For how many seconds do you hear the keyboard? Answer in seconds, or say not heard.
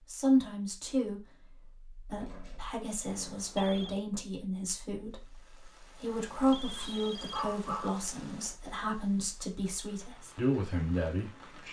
not heard.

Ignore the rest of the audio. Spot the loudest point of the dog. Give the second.
8 s.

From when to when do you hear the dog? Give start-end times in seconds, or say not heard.
2.2-4.0, 6.8-8.0.